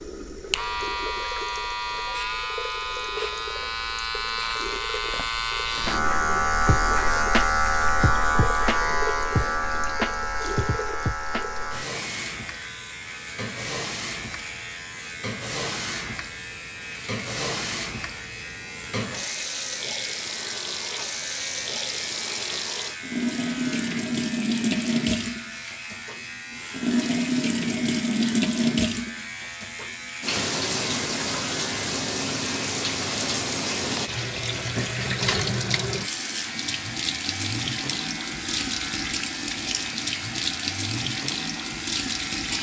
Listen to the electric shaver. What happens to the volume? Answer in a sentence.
The loudness of the electric shaver goes down.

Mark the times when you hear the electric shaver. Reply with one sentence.
The electric shaver can be heard from 0.0 to 42.5 s.